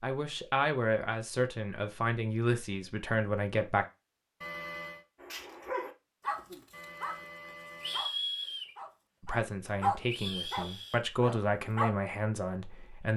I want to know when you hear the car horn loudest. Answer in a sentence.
The loudest moment of the car horn is at 5 seconds.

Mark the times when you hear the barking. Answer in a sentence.
The barking can be heard from 5.2 to 7.2 s and from 7.8 to 11.9 s.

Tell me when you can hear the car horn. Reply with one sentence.
You can hear the car horn from 4.4 to 5.0 s and from 6.7 to 8.1 s.